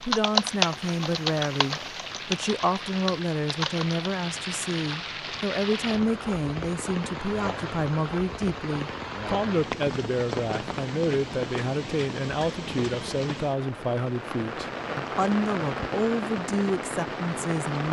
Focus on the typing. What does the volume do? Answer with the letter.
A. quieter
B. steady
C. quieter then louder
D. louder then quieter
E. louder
C.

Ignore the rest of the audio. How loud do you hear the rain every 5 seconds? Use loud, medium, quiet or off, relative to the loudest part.
medium, loud, loud, loud.